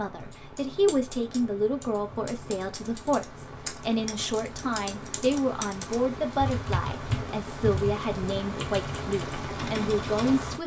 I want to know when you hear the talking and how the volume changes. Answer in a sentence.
You can hear the talking from 0.0 to 10.6 s, at a steady volume.